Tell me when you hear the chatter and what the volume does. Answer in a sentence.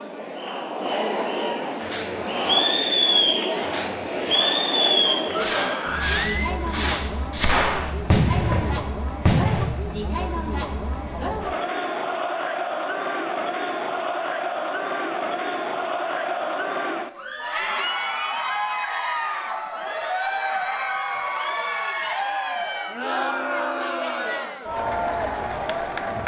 The chatter can be heard from 0.0 to 26.2 s, at a steady volume.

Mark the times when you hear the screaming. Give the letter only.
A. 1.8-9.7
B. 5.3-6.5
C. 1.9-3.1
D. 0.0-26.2
B.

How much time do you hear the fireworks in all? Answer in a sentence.
The fireworks can be heard for 8 seconds in total.